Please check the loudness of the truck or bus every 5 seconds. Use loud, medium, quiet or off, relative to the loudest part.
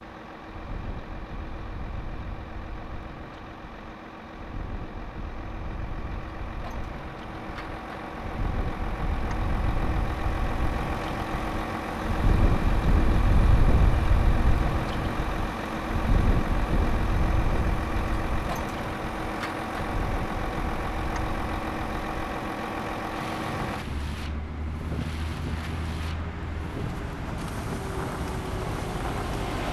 medium, medium, loud, loud, loud, loud.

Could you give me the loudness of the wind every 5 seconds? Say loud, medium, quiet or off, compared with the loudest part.
quiet, medium, loud, loud, medium, medium.